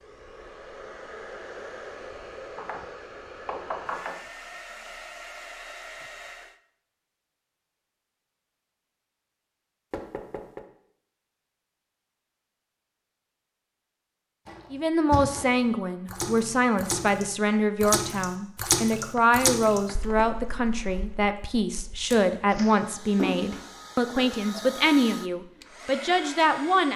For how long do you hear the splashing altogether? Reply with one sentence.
The splashing can be heard for 10 seconds in total.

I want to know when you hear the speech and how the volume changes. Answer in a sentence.
The speech can be heard from 14.7 to 26.9 s, at a steady volume.